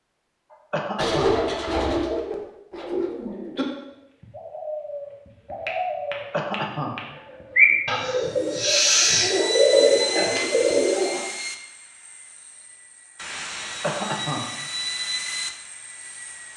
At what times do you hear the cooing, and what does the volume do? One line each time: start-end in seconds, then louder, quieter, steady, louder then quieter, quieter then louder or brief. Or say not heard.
0.9-11.2 quieter then louder.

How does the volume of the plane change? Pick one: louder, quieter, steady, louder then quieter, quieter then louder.
quieter then louder.